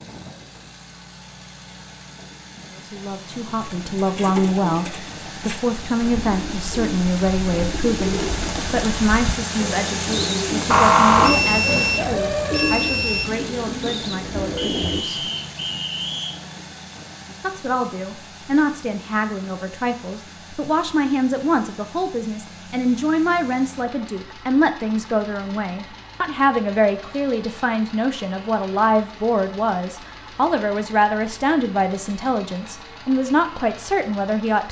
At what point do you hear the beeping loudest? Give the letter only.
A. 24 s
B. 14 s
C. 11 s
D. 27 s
C.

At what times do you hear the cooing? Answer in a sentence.
You can hear the cooing from 3.6 to 15.1 s.